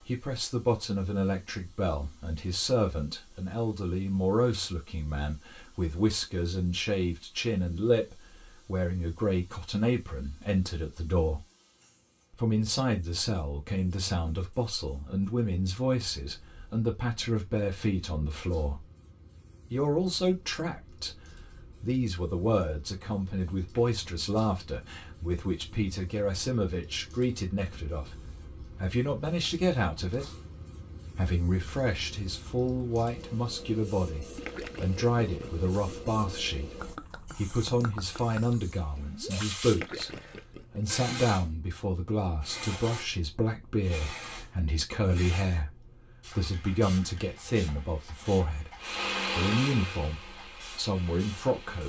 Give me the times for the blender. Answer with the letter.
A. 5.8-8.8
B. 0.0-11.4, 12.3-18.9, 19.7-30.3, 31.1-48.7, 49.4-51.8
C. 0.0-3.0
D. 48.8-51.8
D.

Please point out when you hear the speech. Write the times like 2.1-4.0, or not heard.
0.0-11.4, 12.3-18.9, 19.7-30.3, 31.1-48.7, 49.4-51.8.